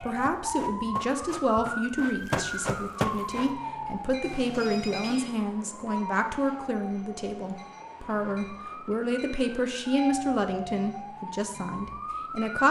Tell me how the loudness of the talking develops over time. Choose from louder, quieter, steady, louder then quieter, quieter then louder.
steady.